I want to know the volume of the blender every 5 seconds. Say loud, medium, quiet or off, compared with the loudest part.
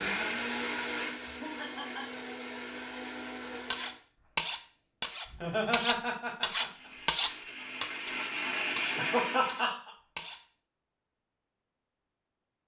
loud, loud, off.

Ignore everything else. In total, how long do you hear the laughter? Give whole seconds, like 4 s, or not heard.
3 s.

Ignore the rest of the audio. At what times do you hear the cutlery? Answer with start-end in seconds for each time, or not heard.
3.7-10.5.